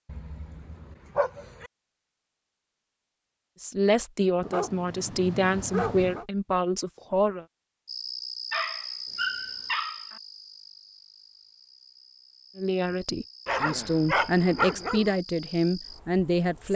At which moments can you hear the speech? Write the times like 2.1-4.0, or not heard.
3.6-7.5, 12.6-16.7.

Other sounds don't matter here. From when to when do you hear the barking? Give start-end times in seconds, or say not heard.
0.1-1.7, 4.4-6.2, 8.5-10.2, 13.4-15.2.